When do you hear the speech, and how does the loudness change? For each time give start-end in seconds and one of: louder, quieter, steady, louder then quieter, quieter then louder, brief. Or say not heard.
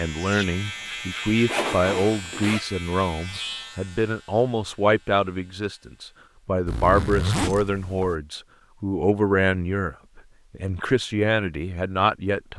0.0-12.5 steady.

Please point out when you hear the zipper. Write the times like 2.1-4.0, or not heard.
1.4-2.6, 6.7-8.2.